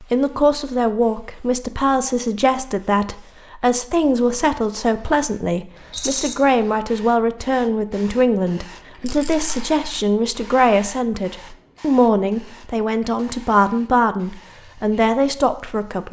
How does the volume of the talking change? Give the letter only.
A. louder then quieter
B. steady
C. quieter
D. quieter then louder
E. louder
B.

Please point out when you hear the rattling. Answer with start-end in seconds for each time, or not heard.
5.9-6.3, 9.1-9.6.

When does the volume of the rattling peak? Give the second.
6 s.